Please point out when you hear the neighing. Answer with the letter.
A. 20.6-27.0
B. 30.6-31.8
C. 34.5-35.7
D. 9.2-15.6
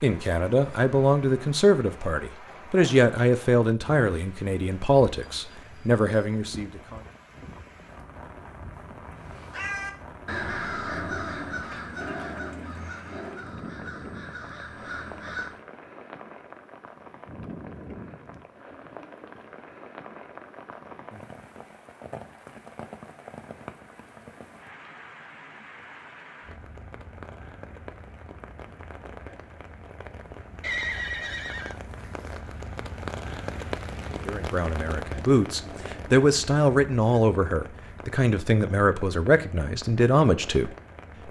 B.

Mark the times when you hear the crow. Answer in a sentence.
The crow can be heard from 9.2 to 15.6 s.